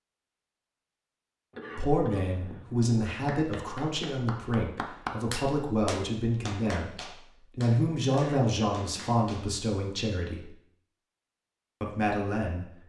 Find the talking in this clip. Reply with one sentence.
You can hear the talking from 1.8 to 10.5 s and from 11.8 to 12.8 s.